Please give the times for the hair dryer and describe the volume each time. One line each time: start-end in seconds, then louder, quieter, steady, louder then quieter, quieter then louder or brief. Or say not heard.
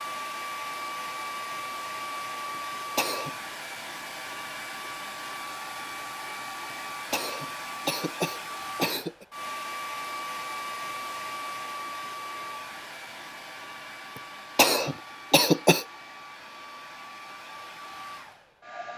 0.0-18.9 quieter.